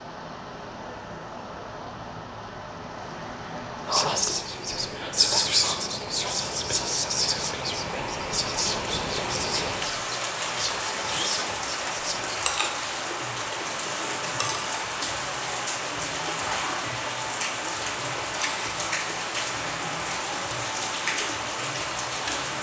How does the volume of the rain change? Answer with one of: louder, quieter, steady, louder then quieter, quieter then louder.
louder.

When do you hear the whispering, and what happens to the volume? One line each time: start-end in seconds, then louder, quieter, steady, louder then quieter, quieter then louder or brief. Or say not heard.
3.9-12.4 quieter.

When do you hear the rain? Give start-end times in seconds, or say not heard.
0.0-22.5.